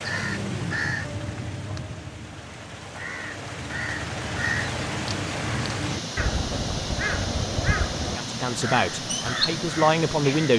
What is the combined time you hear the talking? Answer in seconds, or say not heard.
2 s.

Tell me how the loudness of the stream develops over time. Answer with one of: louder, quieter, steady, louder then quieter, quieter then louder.
louder.